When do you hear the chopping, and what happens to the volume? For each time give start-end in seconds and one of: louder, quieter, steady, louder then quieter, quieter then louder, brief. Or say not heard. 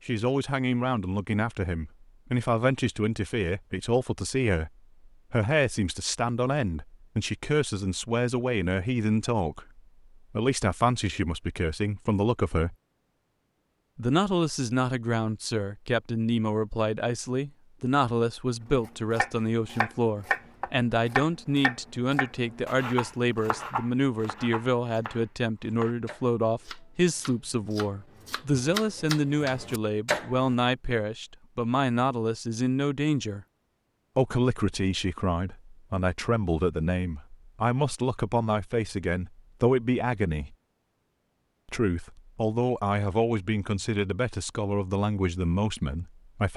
18.6-30.5 quieter then louder.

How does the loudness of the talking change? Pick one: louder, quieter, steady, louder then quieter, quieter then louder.
steady.